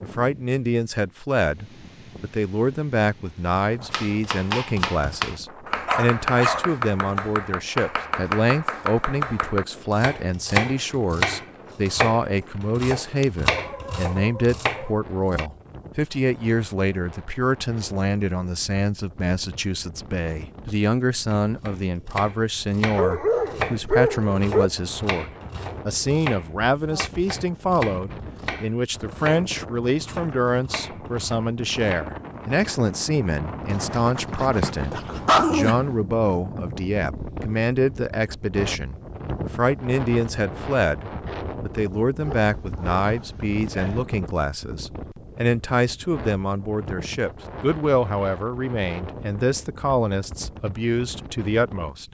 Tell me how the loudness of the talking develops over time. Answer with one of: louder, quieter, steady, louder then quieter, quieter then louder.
steady.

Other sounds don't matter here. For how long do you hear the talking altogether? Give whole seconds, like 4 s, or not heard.
52 s.